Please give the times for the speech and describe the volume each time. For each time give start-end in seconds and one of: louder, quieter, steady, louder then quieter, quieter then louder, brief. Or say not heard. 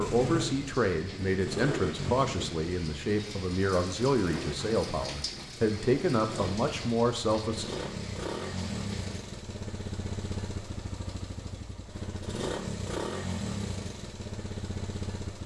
0.0-7.7 steady.